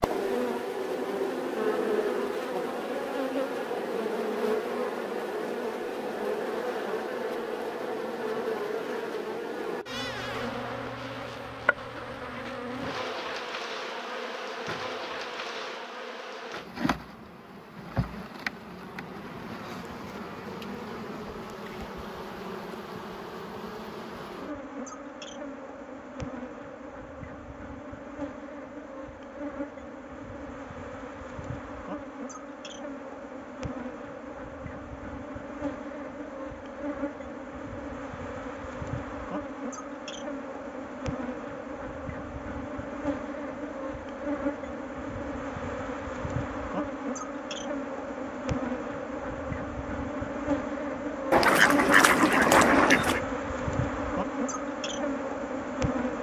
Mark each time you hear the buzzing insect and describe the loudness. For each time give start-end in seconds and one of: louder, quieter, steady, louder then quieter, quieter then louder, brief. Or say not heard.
0.0-56.1 quieter then louder.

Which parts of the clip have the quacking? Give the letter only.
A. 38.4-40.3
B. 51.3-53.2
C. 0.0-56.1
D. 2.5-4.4
B.